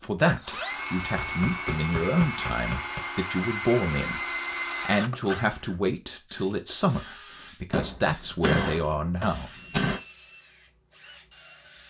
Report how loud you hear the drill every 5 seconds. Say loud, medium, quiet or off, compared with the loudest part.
loud, medium, quiet.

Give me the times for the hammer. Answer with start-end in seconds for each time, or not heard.
1.0-3.0, 7.7-10.0.